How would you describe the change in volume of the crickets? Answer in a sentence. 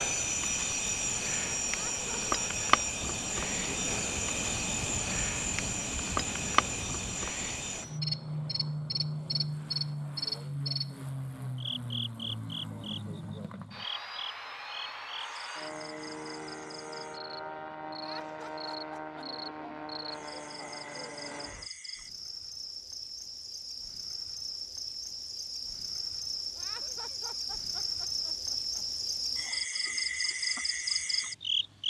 The volume of the crickets goes down, then up.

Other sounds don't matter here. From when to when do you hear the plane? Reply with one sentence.
You can hear the plane from 0.0 to 21.7 s.